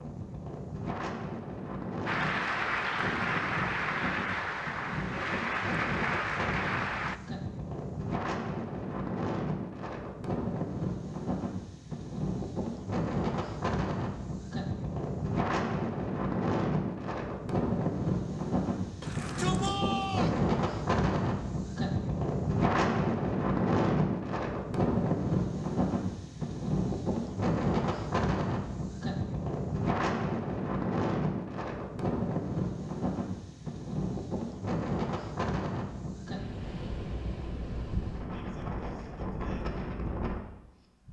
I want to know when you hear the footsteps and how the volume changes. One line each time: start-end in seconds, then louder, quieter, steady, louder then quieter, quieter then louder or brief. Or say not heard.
not heard.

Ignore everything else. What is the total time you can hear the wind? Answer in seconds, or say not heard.
41 s.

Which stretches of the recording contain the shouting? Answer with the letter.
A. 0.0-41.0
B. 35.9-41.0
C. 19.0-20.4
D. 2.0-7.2
C.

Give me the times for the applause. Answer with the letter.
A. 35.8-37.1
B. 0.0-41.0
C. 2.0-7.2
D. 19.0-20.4
C.